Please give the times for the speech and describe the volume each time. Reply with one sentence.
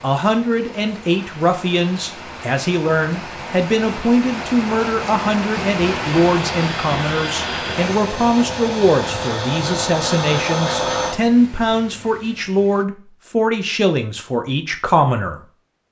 The speech can be heard from 0.0 to 15.4 s, at a steady volume.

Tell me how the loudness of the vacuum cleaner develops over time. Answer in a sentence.
The volume of the vacuum cleaner goes up.